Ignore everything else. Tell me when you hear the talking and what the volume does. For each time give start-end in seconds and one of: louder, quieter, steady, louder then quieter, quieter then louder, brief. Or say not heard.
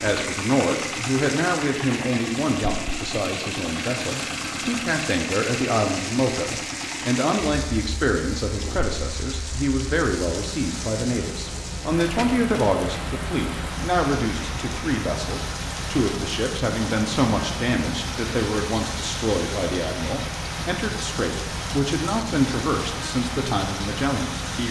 0.0-24.6 steady.